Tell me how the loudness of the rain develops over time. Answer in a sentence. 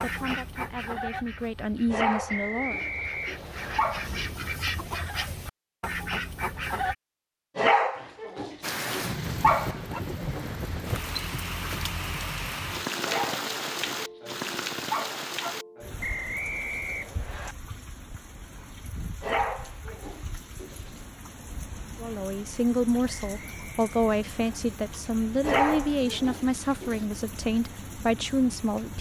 The loudness of the rain goes down.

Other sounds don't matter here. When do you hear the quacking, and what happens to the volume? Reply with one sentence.
The quacking can be heard from 0.0 to 7.0 s, getting quieter then louder.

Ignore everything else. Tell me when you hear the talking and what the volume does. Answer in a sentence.
The talking can be heard briefly from 0.0 to 2.8 s; and from 21.9 to 28.9 s, at a steady volume.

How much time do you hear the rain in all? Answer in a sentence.
You can hear the rain for 20 seconds altogether.